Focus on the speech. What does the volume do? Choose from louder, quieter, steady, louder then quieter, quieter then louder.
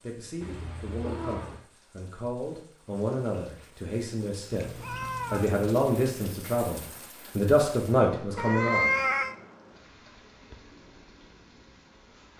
louder.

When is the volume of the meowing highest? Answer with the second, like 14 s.
9 s.